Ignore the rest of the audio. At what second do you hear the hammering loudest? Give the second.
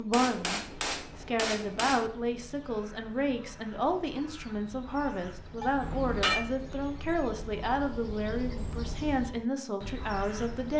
6 s.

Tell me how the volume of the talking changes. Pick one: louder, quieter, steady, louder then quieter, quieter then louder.
steady.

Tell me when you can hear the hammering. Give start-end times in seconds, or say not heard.
0.1-2.1, 5.6-6.5.